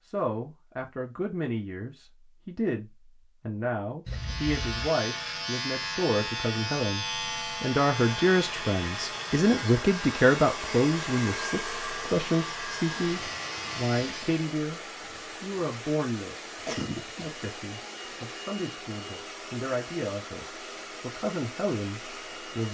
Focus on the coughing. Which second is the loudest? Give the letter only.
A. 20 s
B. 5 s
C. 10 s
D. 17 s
D.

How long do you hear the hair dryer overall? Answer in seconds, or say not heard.
15 s.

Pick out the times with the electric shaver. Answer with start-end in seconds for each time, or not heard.
4.0-14.4.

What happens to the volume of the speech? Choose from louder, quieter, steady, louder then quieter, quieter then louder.
louder then quieter.